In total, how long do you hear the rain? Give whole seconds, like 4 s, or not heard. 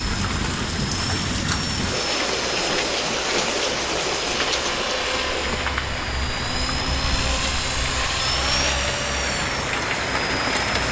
11 s.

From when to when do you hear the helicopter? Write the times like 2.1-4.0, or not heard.
0.0-10.8.